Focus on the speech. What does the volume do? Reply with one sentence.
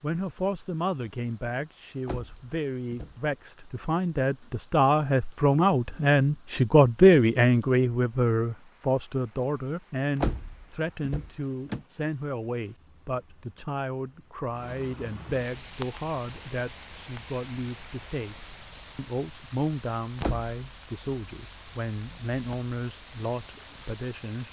The loudness of the speech goes up, then down.